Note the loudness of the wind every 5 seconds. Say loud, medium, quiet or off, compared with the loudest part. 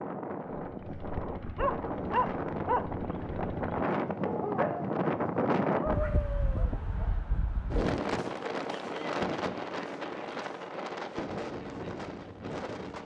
loud, loud, medium.